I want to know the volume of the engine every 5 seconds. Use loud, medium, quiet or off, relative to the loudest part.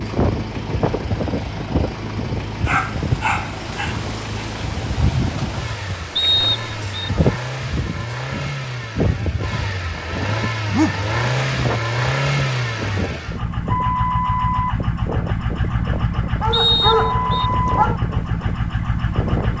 medium, medium, loud, loud.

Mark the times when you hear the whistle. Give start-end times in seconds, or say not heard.
6.2-7.1, 16.5-17.5.